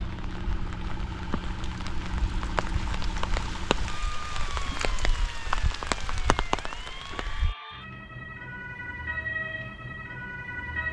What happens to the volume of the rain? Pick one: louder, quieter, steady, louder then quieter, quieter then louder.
louder.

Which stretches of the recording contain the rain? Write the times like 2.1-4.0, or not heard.
0.0-7.5.